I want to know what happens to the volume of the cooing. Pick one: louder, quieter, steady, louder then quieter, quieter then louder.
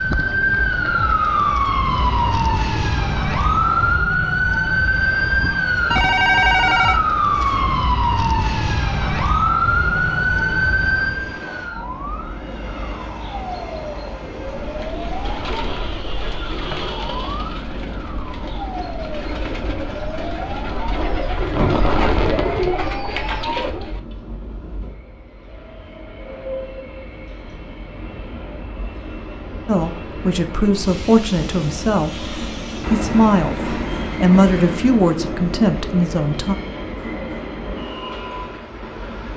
louder.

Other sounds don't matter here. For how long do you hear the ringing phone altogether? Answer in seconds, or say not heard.
2 s.